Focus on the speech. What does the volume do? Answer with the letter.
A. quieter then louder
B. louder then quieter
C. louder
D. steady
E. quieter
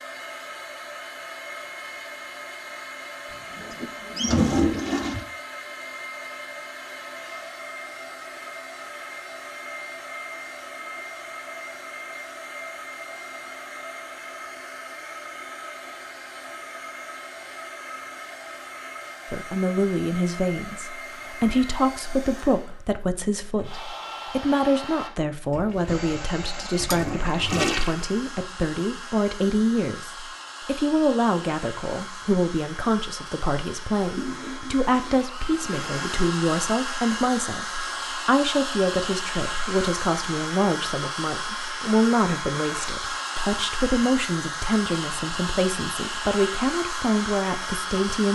D.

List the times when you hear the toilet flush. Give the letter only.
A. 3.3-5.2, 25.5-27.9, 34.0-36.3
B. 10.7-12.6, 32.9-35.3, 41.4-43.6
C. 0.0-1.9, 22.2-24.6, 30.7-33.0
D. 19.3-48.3
A.